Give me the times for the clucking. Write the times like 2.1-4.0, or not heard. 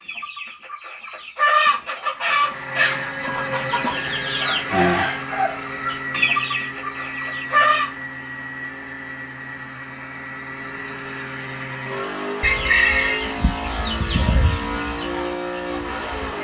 0.0-7.9, 11.9-16.4.